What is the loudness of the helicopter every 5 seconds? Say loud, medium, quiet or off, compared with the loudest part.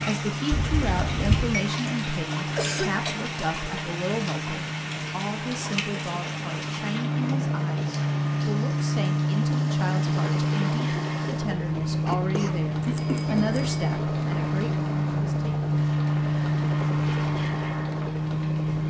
medium, loud, loud, loud.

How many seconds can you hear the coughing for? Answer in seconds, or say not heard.
2 s.